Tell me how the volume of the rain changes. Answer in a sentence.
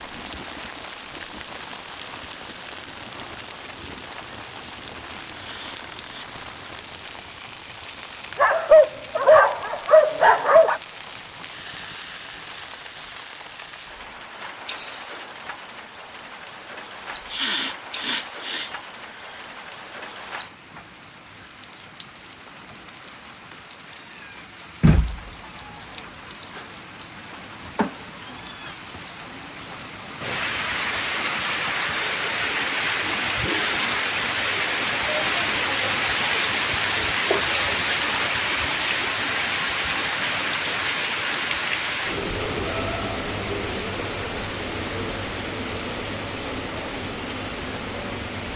The loudness of the rain goes up.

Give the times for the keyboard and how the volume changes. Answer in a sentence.
The keyboard can't be heard in this clip.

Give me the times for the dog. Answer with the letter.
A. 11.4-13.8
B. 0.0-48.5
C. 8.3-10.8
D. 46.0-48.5
C.